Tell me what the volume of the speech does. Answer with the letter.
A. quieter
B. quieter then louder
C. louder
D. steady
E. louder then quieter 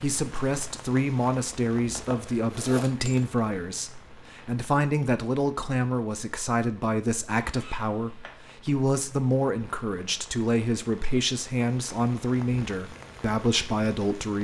D.